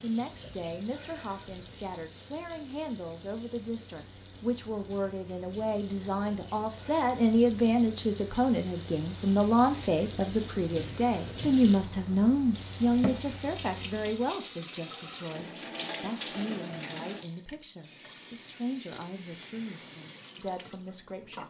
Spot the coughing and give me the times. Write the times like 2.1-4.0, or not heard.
not heard.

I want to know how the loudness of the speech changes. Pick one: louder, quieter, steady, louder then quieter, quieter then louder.
louder then quieter.